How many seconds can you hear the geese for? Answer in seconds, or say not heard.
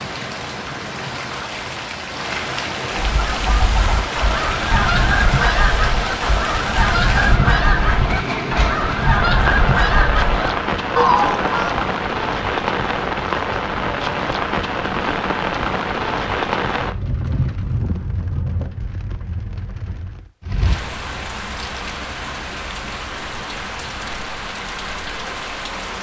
9 s.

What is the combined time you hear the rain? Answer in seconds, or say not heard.
26 s.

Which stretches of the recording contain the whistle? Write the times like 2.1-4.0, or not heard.
not heard.